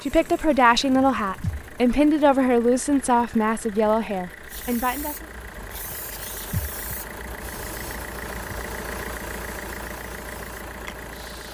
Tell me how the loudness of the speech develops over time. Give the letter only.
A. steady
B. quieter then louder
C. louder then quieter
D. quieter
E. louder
D.